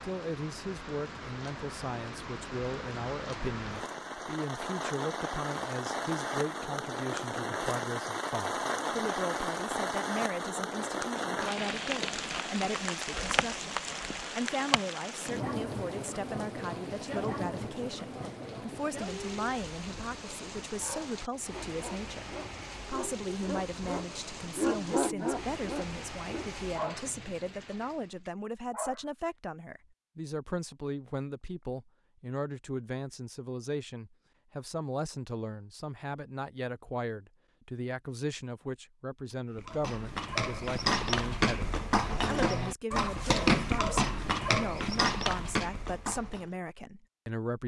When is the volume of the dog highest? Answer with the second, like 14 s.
25 s.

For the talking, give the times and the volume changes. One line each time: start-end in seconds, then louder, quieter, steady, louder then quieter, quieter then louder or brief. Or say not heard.
0.0-47.6 steady.